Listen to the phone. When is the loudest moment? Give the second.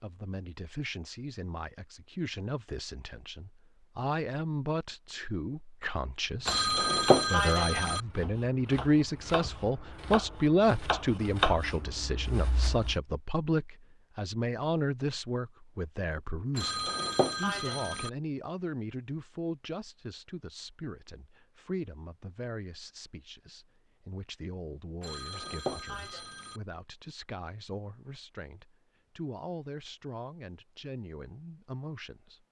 7 s.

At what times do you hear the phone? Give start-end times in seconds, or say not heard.
6.5-8.0, 16.6-18.1, 25.0-26.6.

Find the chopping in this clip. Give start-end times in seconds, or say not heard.
6.3-12.9.